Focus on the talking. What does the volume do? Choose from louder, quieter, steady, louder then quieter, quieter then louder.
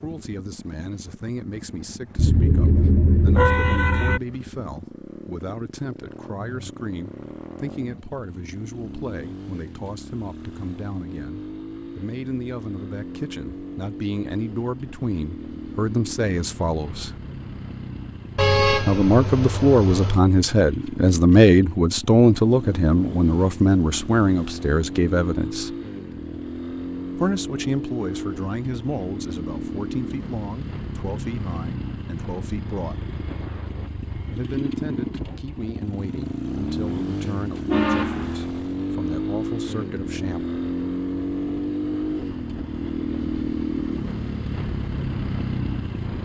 louder then quieter.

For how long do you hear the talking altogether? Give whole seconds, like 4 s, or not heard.
36 s.